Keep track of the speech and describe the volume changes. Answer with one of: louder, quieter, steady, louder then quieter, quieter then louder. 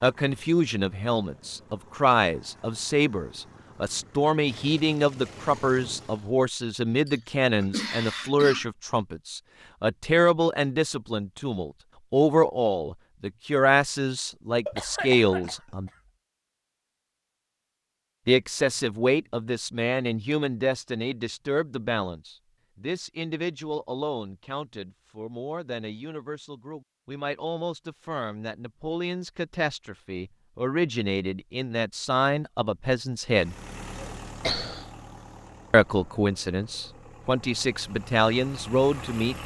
quieter then louder.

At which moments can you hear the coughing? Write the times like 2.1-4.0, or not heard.
7.0-8.7, 14.7-15.9, 34.0-34.9.